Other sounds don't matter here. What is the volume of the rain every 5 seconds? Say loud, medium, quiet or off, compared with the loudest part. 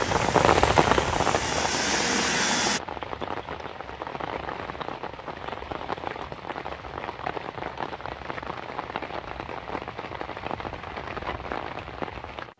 loud, medium, medium.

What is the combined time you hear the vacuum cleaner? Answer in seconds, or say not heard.
3 s.